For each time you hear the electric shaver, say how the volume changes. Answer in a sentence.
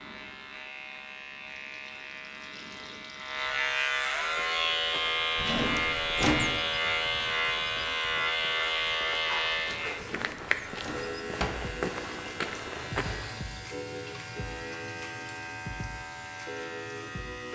The electric shaver can be heard from 0.0 to 17.4 s, getting louder then quieter.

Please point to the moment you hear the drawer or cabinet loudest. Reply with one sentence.
The loudest moment of the drawer or cabinet is at 6 seconds.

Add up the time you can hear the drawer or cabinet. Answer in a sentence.
The drawer or cabinet can be heard for 3 seconds in total.